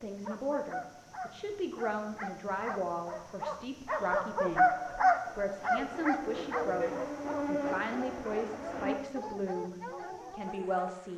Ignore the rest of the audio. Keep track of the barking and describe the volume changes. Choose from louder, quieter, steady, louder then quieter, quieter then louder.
louder then quieter.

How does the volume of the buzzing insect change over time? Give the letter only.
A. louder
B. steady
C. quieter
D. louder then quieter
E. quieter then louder
D.